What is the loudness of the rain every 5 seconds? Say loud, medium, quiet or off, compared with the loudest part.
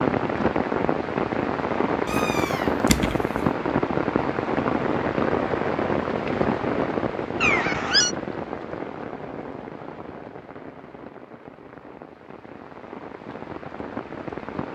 loud, loud, quiet.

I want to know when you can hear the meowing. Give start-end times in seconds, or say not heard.
2.0-3.4, 7.4-8.2.